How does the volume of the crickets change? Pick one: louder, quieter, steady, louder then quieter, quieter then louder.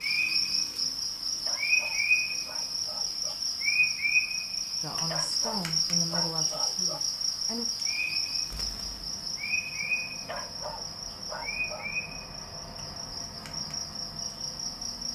quieter.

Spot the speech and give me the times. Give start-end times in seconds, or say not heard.
4.8-7.7.